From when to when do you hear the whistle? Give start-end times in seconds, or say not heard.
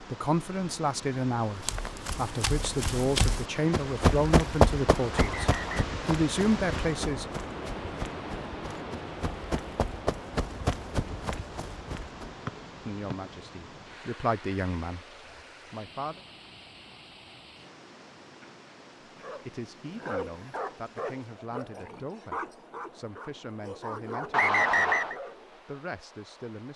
5.1-6.0, 12.4-13.2, 24.3-25.1.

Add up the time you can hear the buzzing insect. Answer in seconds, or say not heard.
not heard.